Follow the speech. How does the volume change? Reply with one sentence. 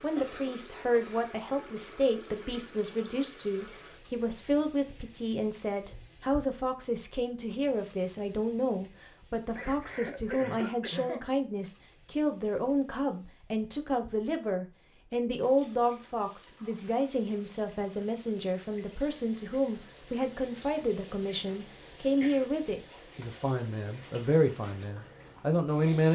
The loudness of the speech stays about the same.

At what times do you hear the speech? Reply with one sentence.
You can hear the speech from 0.0 to 26.1 s.